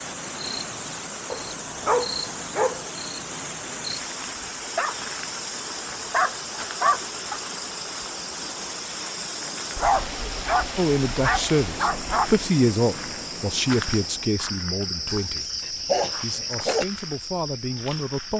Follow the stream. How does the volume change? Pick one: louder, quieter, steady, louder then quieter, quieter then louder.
steady.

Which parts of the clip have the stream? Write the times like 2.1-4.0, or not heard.
0.0-14.4.